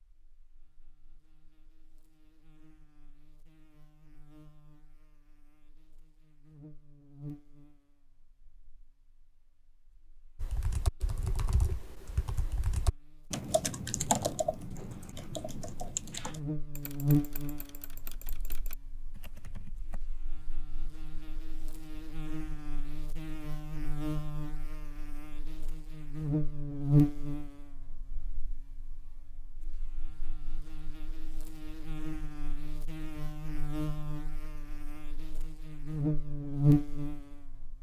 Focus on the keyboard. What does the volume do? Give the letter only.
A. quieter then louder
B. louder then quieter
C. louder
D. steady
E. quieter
B.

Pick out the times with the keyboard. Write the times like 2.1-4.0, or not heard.
10.3-20.0.